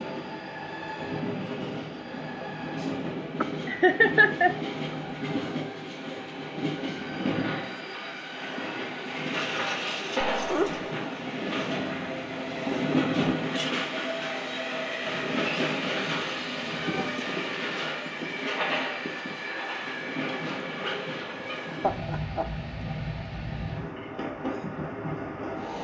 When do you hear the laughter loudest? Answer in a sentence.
The volume of the laughter peaks at 4 seconds.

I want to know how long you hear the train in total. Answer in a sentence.
You can hear the train for 26 seconds altogether.